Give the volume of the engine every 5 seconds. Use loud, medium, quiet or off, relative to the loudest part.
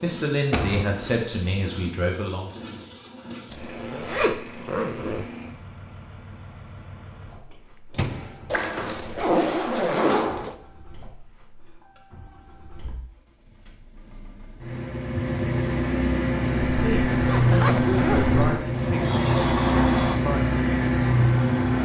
quiet, quiet, quiet, loud, loud.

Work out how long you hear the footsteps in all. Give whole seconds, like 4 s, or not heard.
not heard.